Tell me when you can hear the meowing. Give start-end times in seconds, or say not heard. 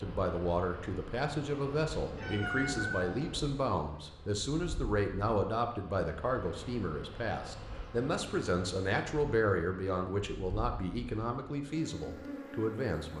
2.0-3.5.